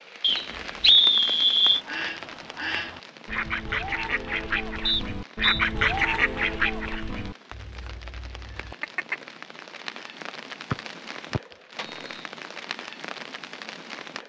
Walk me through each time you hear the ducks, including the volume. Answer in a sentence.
You can hear the ducks from 1.6 to 9.2 s, getting louder then quieter.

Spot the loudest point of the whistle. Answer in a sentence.
The loudest moment of the whistle is at 1 second.